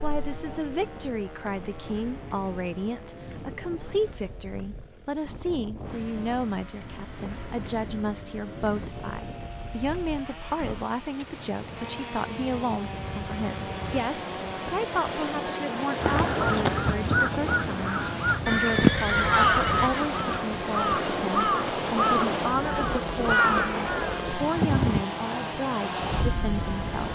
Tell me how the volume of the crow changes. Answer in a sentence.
The volume of the crow stays about the same.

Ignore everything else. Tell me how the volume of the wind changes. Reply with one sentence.
The loudness of the wind goes up.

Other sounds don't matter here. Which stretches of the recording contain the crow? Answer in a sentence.
You can hear the crow from 15.9 to 24.2 s.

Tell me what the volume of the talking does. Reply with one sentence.
The loudness of the talking stays about the same.